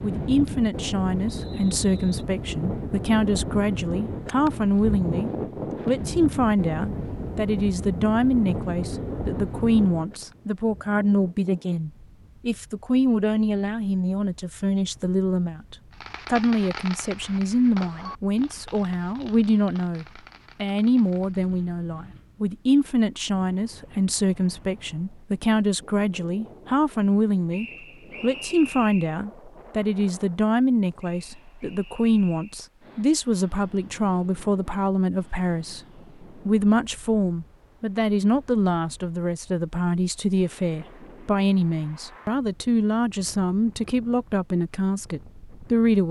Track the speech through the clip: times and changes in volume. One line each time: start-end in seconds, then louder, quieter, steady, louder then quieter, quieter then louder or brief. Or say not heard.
0.0-46.0 steady.